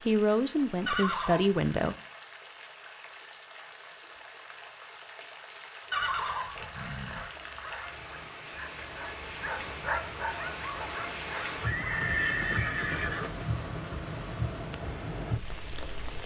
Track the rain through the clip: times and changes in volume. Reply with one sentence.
The rain can be heard from 0.0 to 16.2 s, getting louder.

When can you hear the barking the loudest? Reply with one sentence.
The loudest moment of the barking is at 10 seconds.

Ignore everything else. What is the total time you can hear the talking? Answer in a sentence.
The talking can be heard for 2 seconds in total.